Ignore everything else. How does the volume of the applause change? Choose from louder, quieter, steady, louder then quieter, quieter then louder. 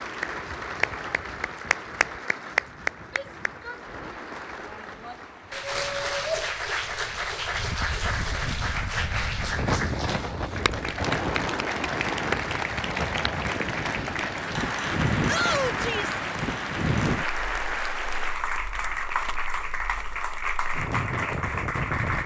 steady.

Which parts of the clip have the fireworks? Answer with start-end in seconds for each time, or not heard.
not heard.